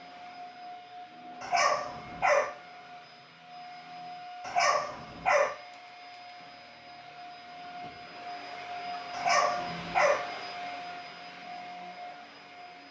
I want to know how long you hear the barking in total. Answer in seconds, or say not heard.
3 s.